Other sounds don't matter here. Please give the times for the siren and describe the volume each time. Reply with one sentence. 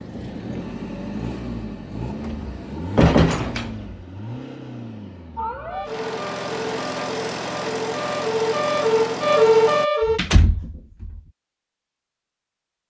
You can hear the siren from 5.3 to 10.2 s, getting louder.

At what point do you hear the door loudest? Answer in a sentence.
The loudest moment of the door is at 3 seconds.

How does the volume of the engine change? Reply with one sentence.
The volume of the engine goes down, then up.